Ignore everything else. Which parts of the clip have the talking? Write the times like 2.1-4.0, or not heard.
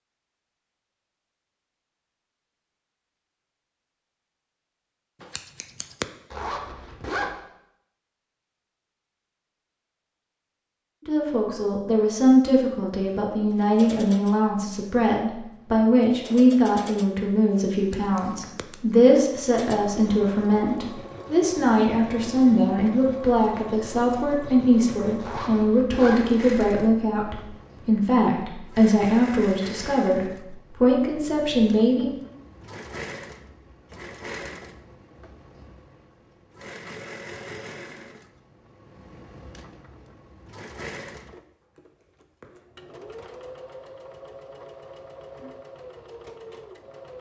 11.1-32.1.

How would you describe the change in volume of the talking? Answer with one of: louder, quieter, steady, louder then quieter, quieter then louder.
steady.